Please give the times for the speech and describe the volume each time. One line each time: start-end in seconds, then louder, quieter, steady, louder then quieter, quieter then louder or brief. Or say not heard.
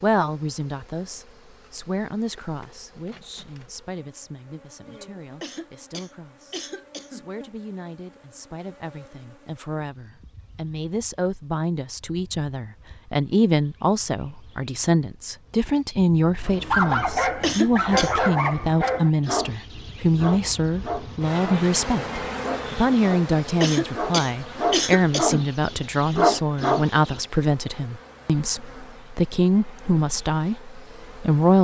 0.0-31.5 louder.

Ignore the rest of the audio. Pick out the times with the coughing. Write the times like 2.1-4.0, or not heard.
5.4-7.2, 17.4-18.1, 23.6-25.4.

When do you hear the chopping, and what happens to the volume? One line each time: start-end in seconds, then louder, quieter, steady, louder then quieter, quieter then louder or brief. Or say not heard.
not heard.